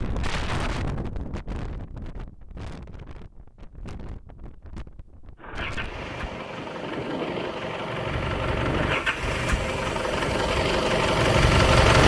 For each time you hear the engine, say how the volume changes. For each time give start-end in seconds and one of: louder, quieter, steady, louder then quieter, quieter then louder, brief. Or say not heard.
5.3-12.0 louder.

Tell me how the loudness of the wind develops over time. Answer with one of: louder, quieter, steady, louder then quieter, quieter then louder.
quieter then louder.